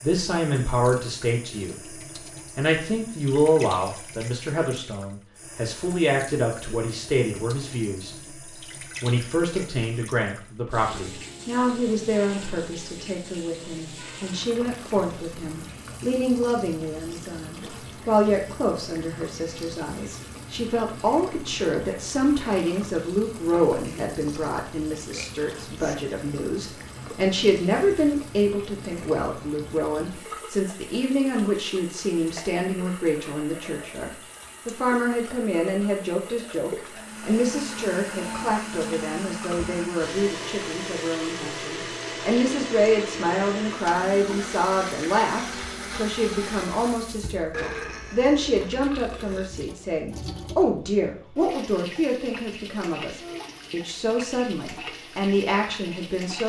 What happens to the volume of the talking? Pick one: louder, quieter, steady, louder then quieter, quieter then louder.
steady.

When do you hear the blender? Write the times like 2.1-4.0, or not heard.
36.9-47.1.